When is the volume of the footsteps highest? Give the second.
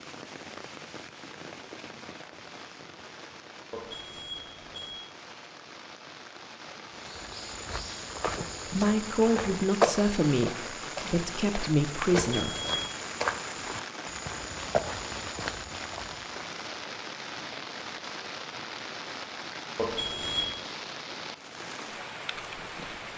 10 s.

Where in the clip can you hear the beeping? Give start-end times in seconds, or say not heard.
3.7-5.0, 12.1-12.8, 19.8-20.6.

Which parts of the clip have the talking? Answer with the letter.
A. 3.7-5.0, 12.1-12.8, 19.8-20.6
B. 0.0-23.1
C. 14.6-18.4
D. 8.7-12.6
D.